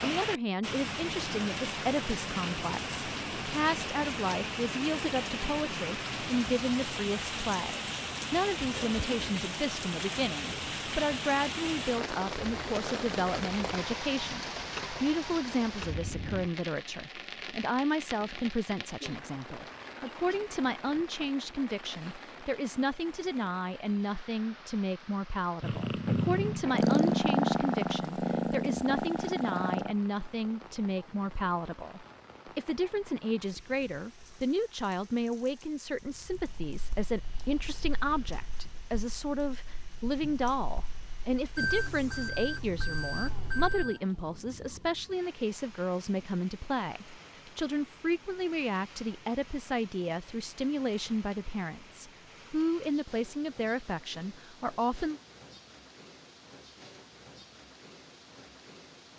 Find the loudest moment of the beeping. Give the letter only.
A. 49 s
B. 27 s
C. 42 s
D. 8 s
C.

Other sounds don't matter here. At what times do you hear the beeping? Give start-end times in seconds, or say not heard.
41.5-44.0.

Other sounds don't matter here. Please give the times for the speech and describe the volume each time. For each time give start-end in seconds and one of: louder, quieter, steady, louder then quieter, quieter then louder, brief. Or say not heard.
0.0-55.2 steady.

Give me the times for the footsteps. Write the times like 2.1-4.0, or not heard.
not heard.